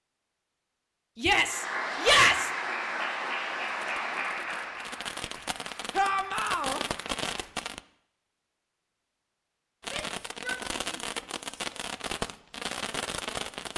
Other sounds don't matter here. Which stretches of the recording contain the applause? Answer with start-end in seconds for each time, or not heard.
1.4-7.5.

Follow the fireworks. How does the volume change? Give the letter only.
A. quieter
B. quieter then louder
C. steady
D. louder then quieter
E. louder
E.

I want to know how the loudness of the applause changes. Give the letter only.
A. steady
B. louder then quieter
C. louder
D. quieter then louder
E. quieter
E.